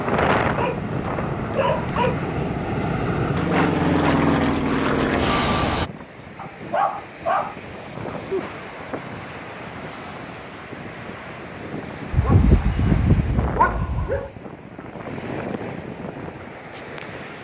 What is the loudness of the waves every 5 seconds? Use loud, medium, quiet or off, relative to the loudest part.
loud, medium, medium, medium.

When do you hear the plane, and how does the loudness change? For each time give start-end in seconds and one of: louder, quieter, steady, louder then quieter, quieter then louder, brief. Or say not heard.
0.0-5.9 louder.